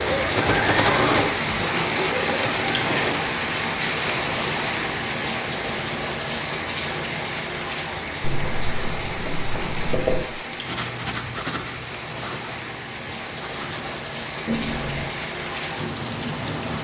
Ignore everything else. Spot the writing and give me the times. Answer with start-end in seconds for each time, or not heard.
8.2-15.1.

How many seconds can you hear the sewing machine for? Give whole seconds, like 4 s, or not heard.
3 s.